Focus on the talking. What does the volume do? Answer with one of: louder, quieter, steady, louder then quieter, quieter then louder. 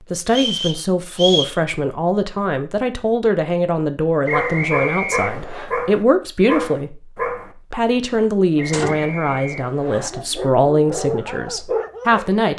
steady.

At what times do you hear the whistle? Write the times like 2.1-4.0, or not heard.
0.2-1.6, 4.2-5.7, 8.6-10.1.